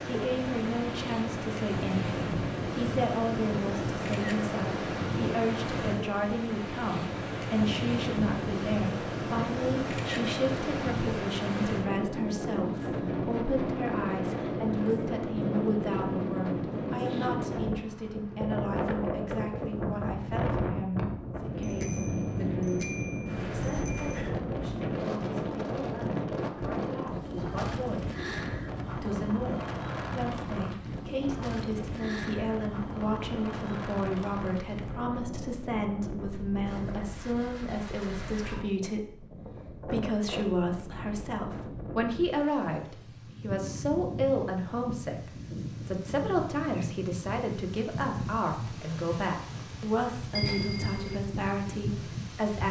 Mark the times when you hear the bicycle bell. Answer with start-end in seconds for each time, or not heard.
21.6-24.2, 50.4-51.2.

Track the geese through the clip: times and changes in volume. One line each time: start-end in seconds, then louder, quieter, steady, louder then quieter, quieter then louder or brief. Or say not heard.
not heard.